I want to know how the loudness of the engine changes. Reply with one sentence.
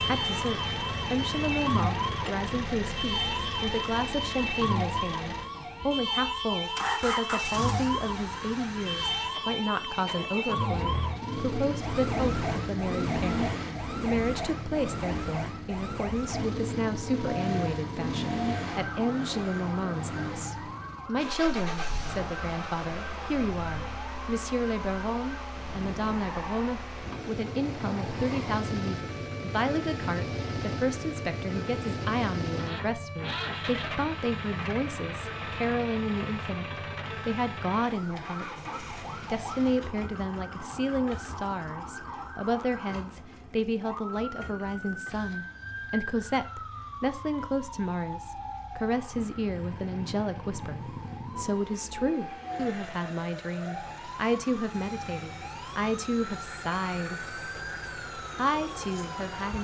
The volume of the engine goes down.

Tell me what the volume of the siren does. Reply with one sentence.
The volume of the siren goes down.